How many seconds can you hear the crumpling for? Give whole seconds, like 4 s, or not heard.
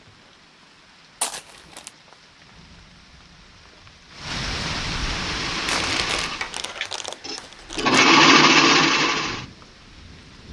3 s.